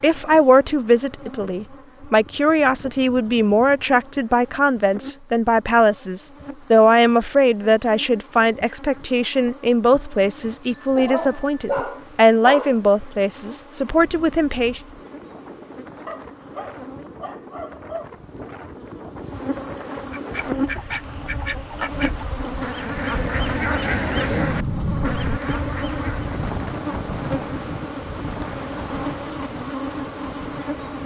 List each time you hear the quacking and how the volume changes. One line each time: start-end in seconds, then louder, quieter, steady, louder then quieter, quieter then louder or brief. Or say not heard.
20.1-26.5 louder then quieter.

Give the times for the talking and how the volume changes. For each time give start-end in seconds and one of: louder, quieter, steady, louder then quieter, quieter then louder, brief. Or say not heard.
0.0-14.8 steady.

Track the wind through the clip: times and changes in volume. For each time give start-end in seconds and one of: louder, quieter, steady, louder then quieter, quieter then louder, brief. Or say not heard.
13.8-31.0 louder then quieter.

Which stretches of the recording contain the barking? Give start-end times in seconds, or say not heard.
10.9-12.8, 16.1-18.1.